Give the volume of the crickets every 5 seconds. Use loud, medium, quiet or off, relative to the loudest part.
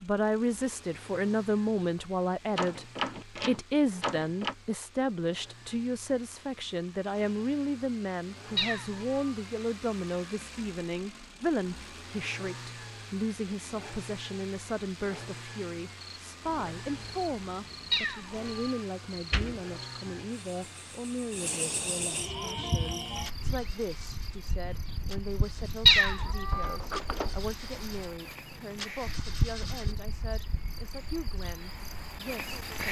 off, off, off, medium, loud, loud, loud.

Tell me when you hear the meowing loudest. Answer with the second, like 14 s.
26 s.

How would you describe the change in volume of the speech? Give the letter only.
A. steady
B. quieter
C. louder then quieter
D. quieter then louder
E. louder
B.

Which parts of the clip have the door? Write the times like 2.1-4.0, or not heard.
2.5-4.5, 19.1-20.2, 26.5-27.4.